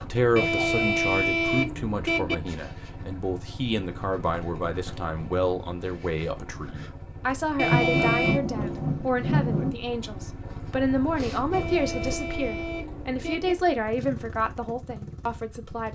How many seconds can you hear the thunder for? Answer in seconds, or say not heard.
2 s.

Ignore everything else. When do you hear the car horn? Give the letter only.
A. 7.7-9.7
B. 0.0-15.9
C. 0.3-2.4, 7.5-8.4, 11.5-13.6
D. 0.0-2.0
C.